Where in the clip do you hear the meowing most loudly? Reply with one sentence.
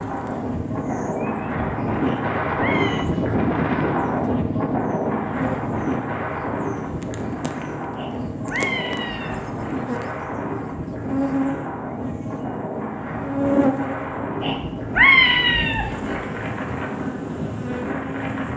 The volume of the meowing peaks at 15 seconds.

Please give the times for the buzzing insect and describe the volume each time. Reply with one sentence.
The buzzing insect can be heard from 0.0 to 18.5 s, getting louder then quieter.